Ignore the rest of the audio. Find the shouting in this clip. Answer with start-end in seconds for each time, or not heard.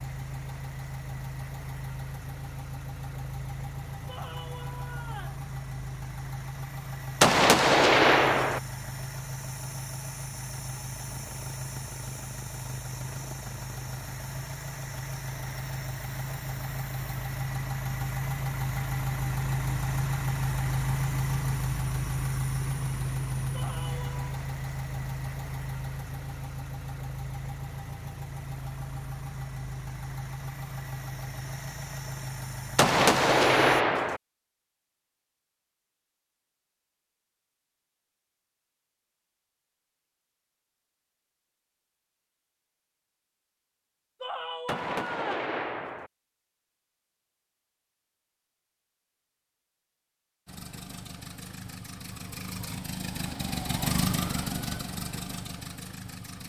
4.0-5.4, 23.5-24.4, 44.2-45.5.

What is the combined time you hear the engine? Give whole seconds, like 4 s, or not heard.
40 s.